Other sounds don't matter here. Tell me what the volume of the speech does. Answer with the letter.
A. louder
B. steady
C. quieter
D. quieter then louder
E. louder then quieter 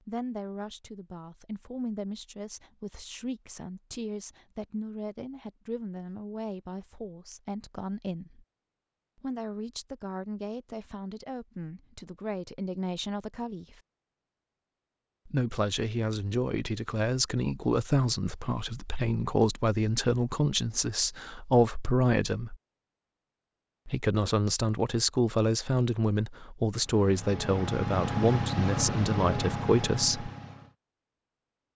A.